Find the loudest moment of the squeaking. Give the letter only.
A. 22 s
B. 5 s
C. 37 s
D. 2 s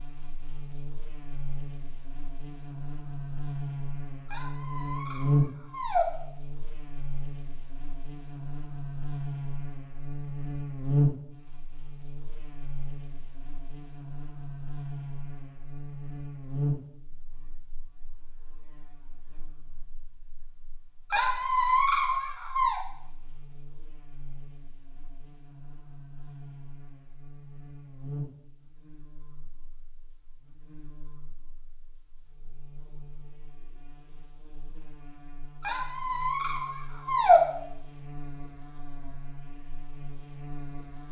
C.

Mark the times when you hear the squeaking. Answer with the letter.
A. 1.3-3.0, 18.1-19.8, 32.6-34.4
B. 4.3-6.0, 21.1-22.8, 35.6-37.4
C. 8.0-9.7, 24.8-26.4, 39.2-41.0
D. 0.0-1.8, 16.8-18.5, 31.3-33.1
B.